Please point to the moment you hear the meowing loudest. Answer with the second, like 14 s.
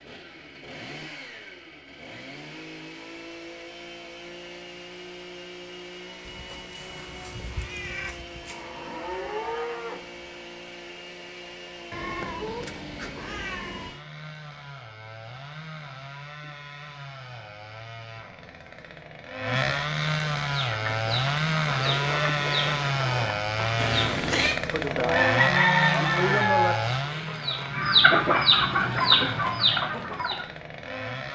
24 s.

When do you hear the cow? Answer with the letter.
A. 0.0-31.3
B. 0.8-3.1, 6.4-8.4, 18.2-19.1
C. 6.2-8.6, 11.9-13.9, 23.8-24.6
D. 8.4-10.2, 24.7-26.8
D.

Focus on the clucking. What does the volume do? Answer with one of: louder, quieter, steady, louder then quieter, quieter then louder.
louder.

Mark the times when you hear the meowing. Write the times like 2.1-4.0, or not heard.
6.2-8.6, 11.9-13.9, 23.8-24.6.